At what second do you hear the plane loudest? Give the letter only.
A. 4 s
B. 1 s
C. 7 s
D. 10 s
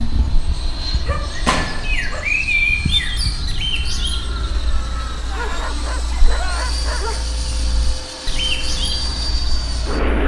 D.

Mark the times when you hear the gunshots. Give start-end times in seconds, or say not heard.
1.4-1.9.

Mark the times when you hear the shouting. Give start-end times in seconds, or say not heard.
not heard.